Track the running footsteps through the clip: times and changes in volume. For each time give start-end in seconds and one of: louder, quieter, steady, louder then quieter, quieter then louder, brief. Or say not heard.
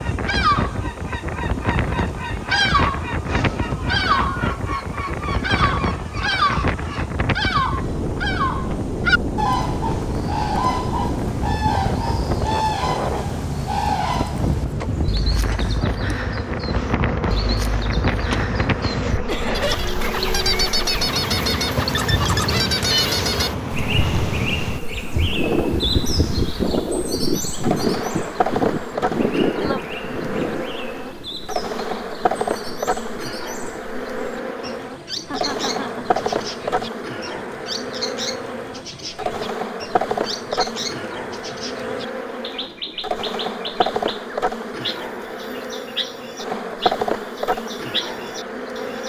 not heard.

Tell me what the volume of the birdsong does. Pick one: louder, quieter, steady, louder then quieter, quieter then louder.
quieter.